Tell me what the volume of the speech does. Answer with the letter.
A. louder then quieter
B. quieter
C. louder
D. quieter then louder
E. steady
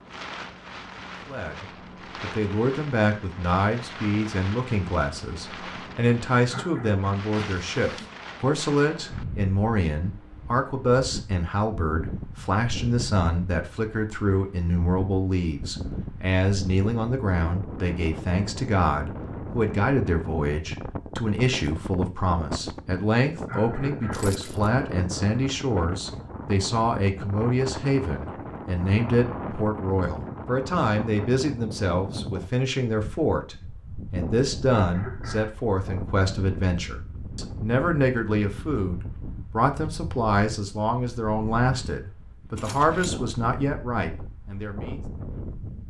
E.